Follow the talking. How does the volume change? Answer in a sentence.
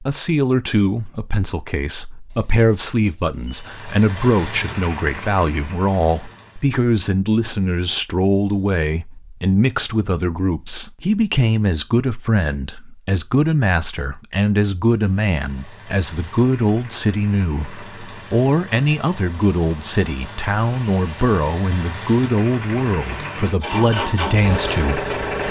The volume of the talking stays about the same.